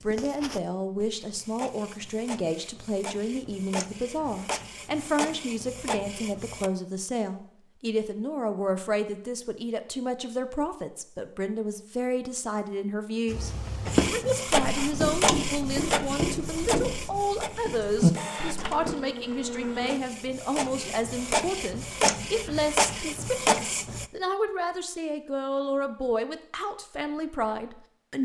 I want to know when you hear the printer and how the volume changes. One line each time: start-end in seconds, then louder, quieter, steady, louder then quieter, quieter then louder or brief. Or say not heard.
0.0-6.7 louder
13.8-24.1 quieter then louder.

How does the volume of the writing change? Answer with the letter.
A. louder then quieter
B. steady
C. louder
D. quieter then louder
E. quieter
D.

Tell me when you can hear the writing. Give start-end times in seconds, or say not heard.
13.2-18.9.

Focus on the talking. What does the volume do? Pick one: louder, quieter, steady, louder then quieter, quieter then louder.
steady.